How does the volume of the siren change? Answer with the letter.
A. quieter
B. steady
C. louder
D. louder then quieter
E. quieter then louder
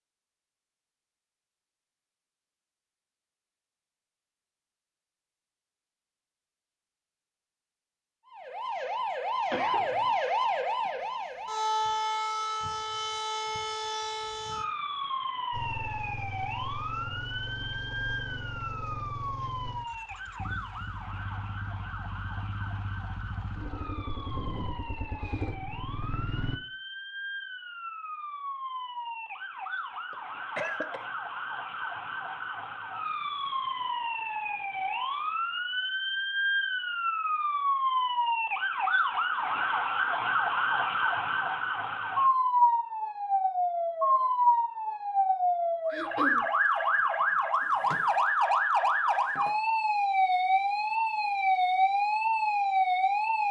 E.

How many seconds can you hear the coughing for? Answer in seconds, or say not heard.
2 s.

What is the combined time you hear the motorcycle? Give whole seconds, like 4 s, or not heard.
11 s.